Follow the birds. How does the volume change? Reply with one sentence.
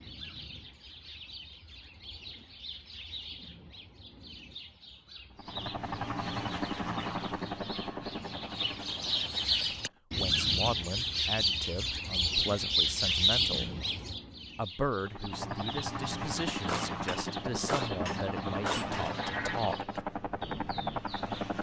The loudness of the birds goes up, then down.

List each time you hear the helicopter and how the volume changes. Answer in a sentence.
You can hear the helicopter from 5.3 to 10.0 s, getting quieter; and from 14.9 to 21.5 s, at a steady volume.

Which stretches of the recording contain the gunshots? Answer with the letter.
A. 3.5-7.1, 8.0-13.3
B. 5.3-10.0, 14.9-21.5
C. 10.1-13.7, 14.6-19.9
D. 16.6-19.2
D.